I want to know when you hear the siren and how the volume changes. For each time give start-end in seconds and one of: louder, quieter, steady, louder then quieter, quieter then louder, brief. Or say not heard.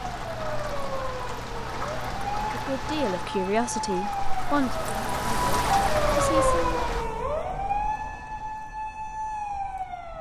0.1-10.1 louder then quieter.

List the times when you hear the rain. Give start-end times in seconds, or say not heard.
0.0-7.1.